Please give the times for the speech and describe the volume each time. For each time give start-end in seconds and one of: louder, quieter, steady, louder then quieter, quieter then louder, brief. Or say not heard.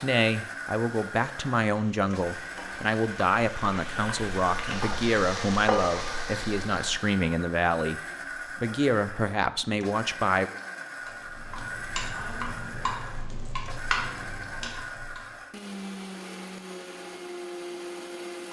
0.0-10.5 steady.